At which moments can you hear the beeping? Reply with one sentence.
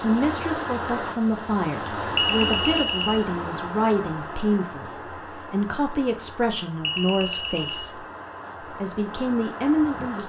You can hear the beeping from 2.1 to 3.2 s and from 6.8 to 7.9 s.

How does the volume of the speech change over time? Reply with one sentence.
The loudness of the speech stays about the same.